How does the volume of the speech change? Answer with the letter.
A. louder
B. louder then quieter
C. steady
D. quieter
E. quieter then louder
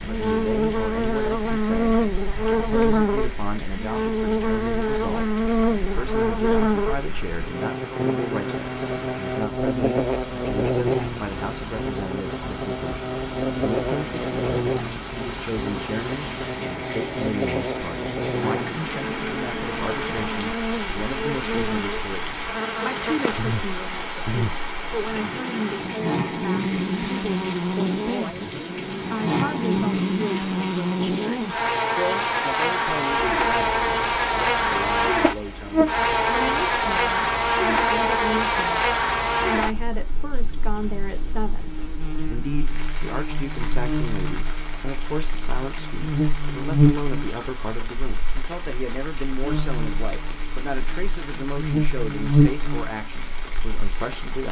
C.